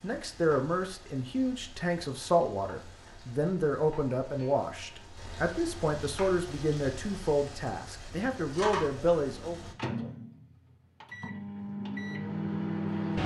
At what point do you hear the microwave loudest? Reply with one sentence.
The volume of the microwave peaks at 13 seconds.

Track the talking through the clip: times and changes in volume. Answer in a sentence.
The talking can be heard from 0.0 to 9.6 s, at a steady volume.